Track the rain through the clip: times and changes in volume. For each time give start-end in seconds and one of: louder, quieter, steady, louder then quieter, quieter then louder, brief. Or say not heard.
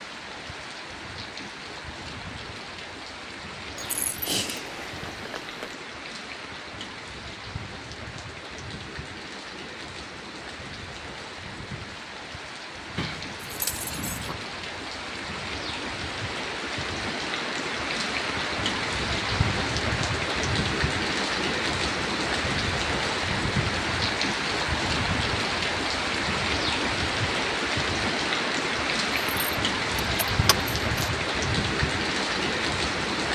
0.0-33.3 louder.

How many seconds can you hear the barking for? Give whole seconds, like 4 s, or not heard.
not heard.